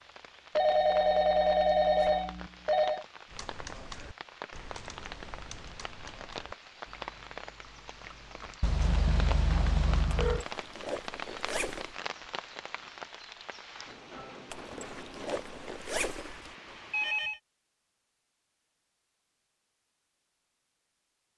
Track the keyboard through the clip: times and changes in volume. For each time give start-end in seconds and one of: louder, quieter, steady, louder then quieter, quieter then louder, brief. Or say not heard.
3.2-8.6 quieter.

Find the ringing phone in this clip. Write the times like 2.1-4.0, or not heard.
0.6-3.0, 8.6-10.4, 16.9-17.4.